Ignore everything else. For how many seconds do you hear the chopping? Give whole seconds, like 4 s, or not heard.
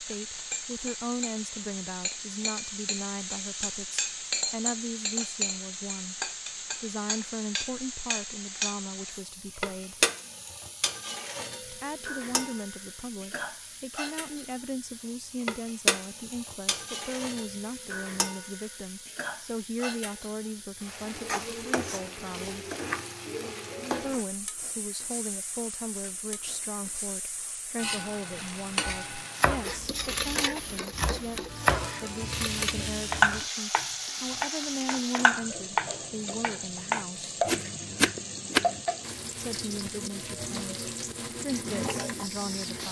10 s.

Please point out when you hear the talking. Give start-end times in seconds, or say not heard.
0.0-10.0, 11.7-22.6, 23.9-37.4, 39.4-42.8.